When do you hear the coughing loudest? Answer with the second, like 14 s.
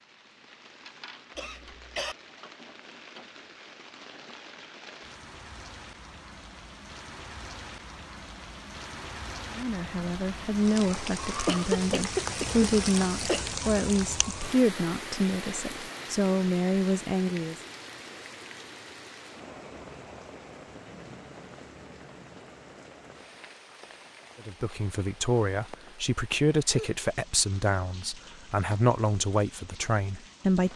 12 s.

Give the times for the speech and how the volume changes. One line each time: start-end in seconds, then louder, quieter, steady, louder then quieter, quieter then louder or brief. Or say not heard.
9.5-17.6 steady
24.4-30.7 steady.